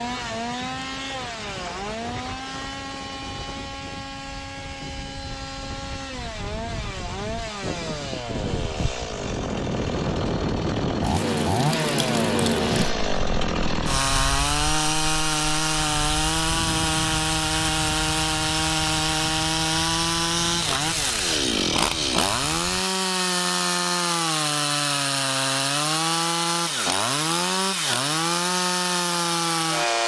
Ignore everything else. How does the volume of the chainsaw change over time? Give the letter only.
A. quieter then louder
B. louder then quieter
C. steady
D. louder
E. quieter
D.